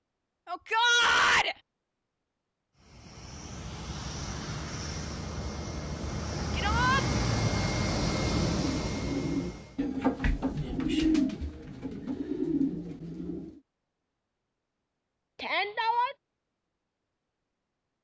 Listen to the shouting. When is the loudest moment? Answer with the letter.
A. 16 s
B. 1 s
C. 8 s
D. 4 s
B.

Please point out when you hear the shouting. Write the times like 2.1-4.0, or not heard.
0.5-1.6, 6.5-7.0, 15.3-16.1.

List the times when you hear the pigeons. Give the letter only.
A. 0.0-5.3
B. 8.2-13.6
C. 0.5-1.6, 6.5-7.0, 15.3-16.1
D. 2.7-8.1
B.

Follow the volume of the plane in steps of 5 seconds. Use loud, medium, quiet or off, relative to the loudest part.
medium, loud, off, off.